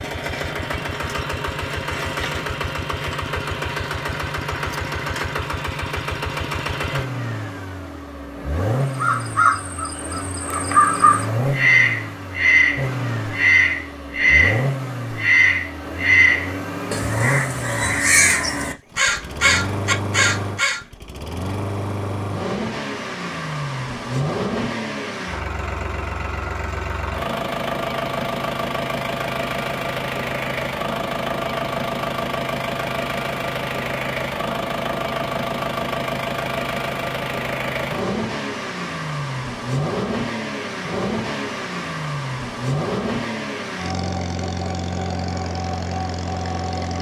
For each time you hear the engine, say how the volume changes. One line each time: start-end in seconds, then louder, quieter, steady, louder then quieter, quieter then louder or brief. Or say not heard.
0.0-46.9 steady.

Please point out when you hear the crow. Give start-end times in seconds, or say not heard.
8.9-20.8.